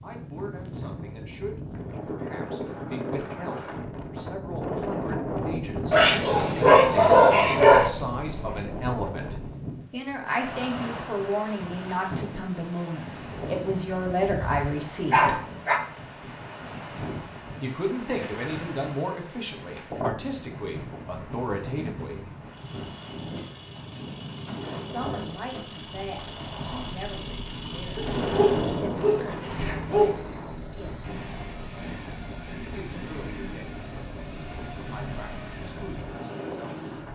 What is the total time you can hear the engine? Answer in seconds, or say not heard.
15 s.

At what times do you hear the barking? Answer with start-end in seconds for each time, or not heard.
5.9-7.9, 14.1-15.8, 27.9-30.2.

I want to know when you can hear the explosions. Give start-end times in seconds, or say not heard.
28.0-29.5.